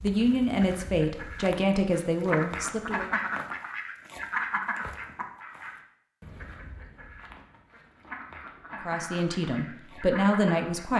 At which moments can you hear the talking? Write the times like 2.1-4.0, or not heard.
0.0-3.1, 8.8-10.9.